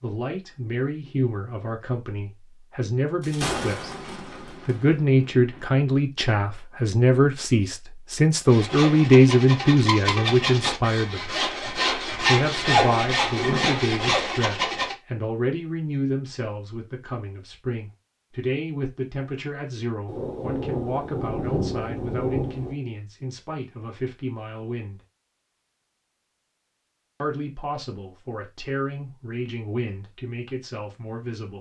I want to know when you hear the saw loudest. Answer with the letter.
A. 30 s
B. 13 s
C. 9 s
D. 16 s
B.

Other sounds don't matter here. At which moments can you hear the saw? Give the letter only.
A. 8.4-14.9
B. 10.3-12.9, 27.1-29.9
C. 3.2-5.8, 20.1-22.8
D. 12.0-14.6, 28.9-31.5
A.